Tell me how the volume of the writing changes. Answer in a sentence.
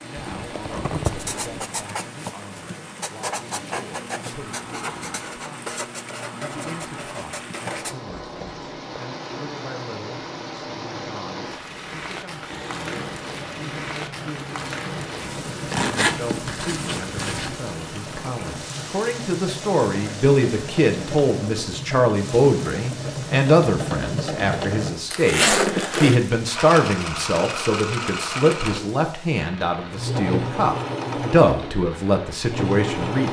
The loudness of the writing stays about the same.